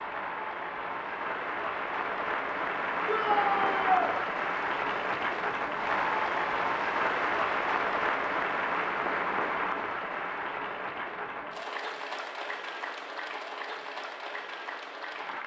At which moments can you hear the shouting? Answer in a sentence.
The shouting can be heard from 3.0 to 4.2 s.